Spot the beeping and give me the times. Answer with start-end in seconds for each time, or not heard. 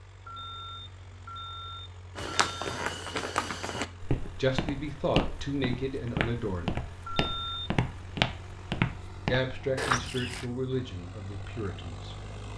0.2-2.8, 7.0-7.7.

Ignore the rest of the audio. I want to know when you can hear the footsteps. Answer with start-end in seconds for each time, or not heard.
2.1-10.4.